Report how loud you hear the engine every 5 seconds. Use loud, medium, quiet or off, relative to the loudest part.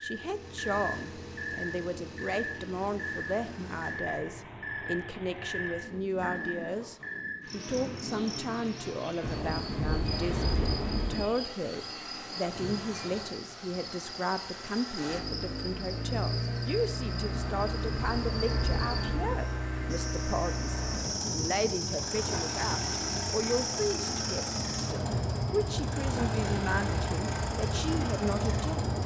medium, medium, medium, loud, loud, loud.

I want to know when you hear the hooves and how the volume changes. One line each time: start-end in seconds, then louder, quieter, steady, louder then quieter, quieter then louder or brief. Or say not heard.
not heard.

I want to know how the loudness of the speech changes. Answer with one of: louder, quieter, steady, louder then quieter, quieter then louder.
steady.